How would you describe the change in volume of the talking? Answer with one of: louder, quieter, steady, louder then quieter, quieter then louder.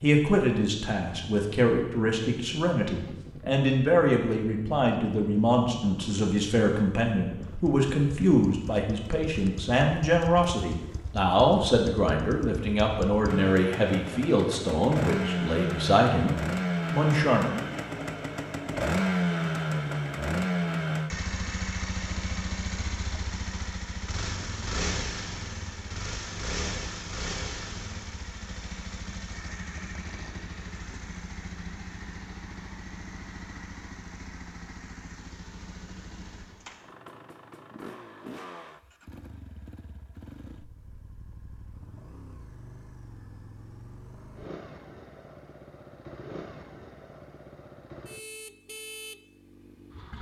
steady.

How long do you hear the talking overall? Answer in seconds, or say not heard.
18 s.